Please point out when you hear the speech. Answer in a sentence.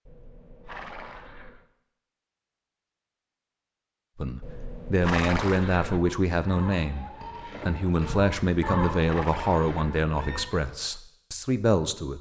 The speech can be heard from 4.2 to 12.1 s.